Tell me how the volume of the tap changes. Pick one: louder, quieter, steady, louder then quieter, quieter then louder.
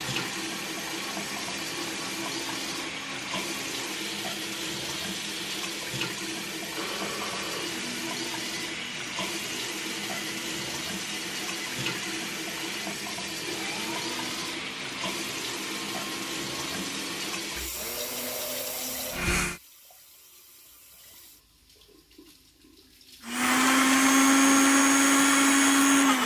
quieter.